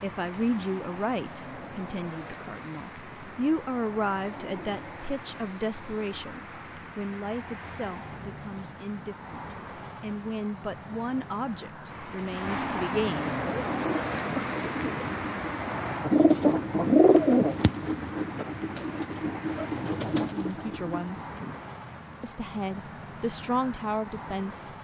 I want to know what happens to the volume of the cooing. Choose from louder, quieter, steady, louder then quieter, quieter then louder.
louder then quieter.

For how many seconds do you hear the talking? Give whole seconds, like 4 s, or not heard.
17 s.